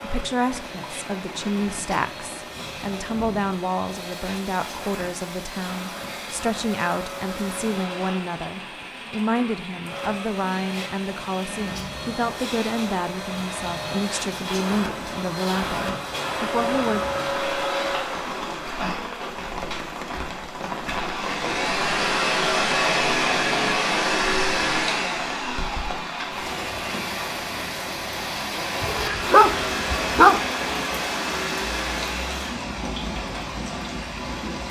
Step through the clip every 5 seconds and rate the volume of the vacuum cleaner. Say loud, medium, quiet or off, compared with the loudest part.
quiet, quiet, medium, medium, loud, medium, medium.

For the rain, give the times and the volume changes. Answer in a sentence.
You can hear the rain from 0.0 to 34.6 s, getting louder.